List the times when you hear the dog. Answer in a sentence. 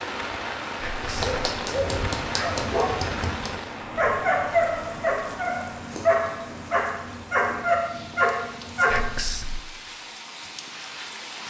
You can hear the dog from 1.1 to 9.1 s.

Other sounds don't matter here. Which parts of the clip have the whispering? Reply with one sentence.
You can hear the whispering from 0.8 to 1.4 s and from 8.8 to 9.6 s.